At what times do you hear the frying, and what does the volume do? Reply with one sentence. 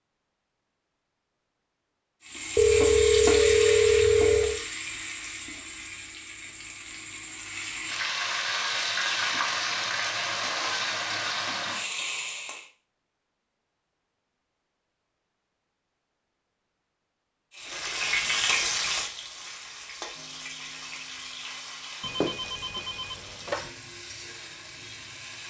You can hear the frying from 2.2 to 12.7 s, getting quieter then louder; and from 17.6 to 25.4 s, getting quieter.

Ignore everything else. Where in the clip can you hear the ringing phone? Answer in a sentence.
The ringing phone can be heard from 2.5 to 4.6 s and from 22.0 to 23.6 s.